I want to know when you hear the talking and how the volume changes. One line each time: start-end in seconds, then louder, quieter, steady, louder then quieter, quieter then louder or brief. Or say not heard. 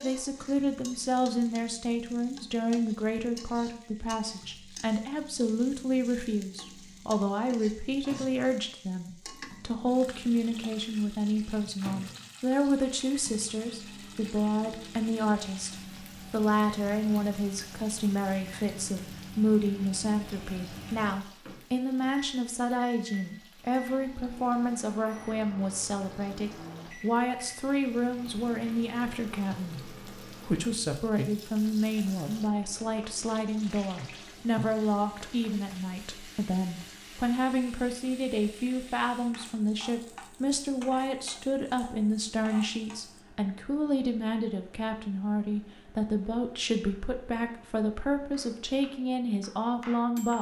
0.0-50.3 steady.